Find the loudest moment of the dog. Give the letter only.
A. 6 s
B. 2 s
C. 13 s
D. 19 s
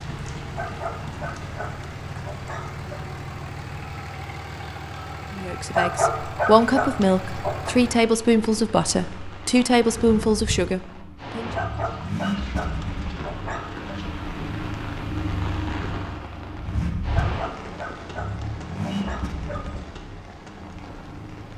A.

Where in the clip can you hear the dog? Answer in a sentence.
The dog can be heard from 0.6 to 2.9 s, from 5.7 to 7.8 s, from 11.5 to 13.8 s and from 17.1 to 19.9 s.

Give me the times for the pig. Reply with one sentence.
The pig can't be heard in this clip.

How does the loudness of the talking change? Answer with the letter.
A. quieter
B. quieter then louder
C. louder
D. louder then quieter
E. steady
E.